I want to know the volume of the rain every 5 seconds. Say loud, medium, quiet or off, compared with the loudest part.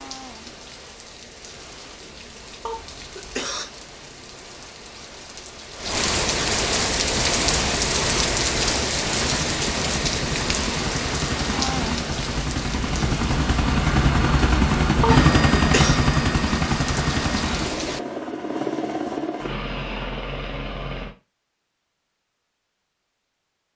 quiet, loud, medium, medium, off.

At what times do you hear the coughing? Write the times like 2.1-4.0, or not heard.
2.6-3.6, 15.0-16.0.